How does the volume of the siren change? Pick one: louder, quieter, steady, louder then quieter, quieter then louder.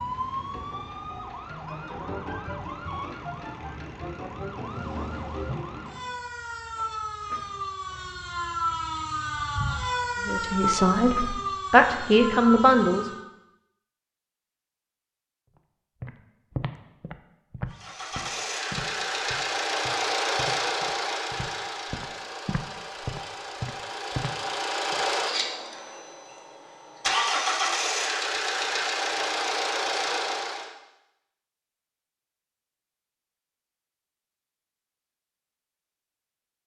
louder.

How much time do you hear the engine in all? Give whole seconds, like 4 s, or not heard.
13 s.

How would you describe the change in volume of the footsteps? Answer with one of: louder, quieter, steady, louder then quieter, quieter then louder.
quieter then louder.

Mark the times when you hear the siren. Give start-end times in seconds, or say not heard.
0.0-13.2.